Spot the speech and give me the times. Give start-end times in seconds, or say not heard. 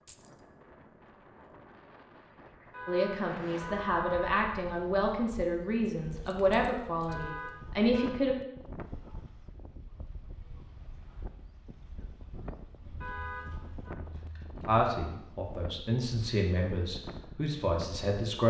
2.9-8.3, 14.7-18.4.